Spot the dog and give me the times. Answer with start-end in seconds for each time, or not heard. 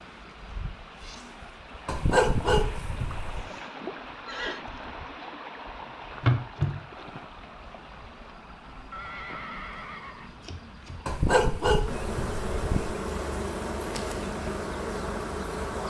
1.9-3.5, 11.1-13.1.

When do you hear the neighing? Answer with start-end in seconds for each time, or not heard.
3.3-4.6, 8.9-10.3.